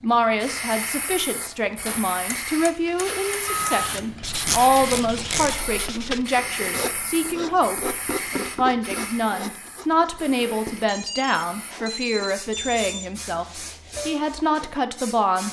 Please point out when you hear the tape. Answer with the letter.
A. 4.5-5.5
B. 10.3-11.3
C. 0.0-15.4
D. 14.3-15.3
A.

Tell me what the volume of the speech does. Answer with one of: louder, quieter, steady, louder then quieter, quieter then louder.
steady.